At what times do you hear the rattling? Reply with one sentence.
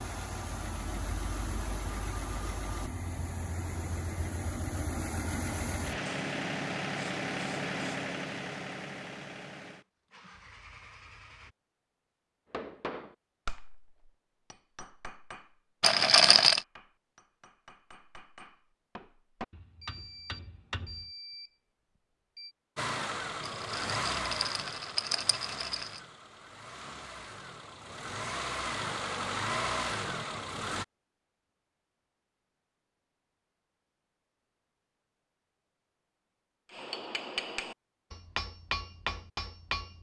The rattling can be heard from 15.8 to 16.6 s and from 23.4 to 25.9 s.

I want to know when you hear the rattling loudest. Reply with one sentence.
The loudest moment of the rattling is at 16 seconds.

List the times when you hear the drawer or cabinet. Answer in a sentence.
You can't hear the drawer or cabinet here.